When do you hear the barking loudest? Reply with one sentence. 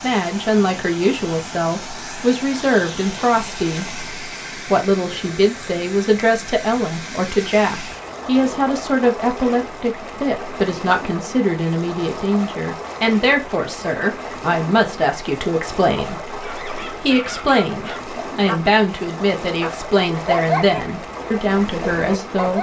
The volume of the barking peaks at 20 seconds.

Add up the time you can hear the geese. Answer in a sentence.
You can't hear the geese here.